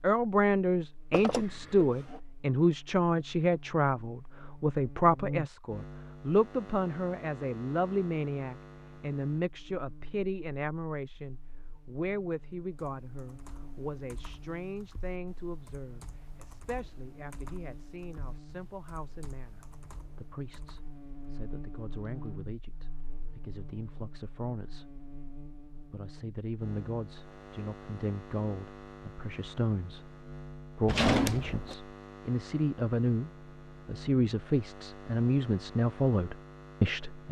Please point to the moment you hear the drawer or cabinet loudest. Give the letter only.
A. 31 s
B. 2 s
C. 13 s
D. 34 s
A.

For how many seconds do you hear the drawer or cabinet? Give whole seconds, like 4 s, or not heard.
2 s.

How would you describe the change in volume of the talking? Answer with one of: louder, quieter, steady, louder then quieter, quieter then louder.
quieter then louder.